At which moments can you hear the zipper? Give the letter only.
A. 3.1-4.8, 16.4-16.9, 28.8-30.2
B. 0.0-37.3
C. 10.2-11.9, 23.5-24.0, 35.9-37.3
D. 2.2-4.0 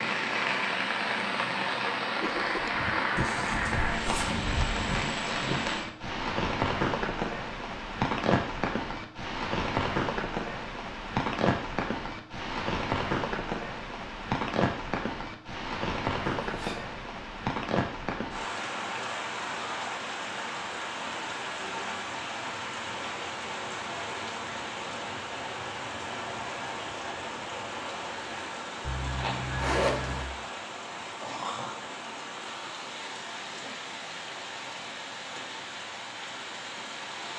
A.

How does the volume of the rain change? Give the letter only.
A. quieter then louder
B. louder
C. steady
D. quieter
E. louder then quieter
D.